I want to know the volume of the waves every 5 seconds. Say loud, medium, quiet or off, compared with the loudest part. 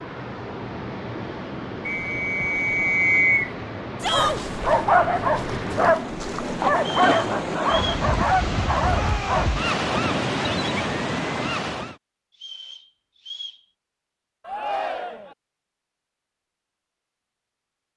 medium, loud, loud, off.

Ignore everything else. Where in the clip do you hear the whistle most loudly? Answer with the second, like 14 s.
3 s.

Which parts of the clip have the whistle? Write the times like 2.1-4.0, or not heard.
1.9-3.5, 6.8-8.1, 12.4-13.6.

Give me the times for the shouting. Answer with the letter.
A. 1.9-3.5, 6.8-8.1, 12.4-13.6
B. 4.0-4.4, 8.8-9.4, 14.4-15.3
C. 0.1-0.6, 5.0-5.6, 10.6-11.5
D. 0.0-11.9
B.